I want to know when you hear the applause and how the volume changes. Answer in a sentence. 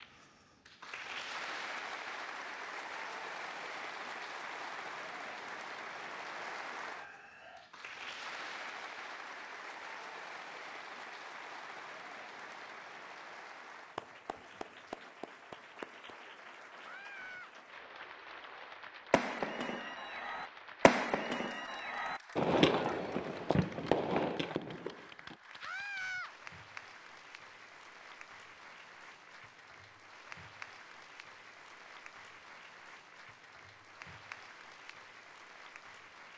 You can hear the applause from 0.0 to 36.3 s, getting quieter.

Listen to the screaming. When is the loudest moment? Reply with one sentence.
The volume of the screaming peaks at 26 seconds.